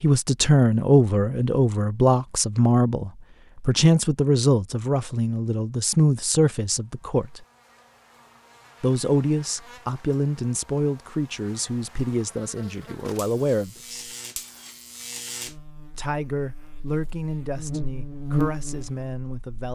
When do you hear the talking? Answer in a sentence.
The talking can be heard from 0.0 to 7.5 s, from 8.8 to 14.1 s and from 15.9 to 19.6 s.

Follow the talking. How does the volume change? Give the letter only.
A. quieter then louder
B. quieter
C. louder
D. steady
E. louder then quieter
B.